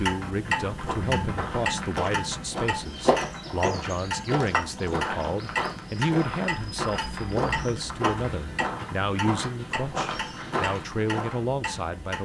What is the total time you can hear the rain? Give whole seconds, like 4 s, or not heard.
not heard.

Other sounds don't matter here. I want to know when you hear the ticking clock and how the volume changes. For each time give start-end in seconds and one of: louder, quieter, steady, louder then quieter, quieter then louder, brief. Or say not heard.
0.0-12.2 quieter.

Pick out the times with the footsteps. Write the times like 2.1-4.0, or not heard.
0.6-11.4.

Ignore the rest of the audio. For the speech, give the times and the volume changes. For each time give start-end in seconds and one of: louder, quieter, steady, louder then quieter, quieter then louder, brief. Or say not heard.
0.0-12.2 steady.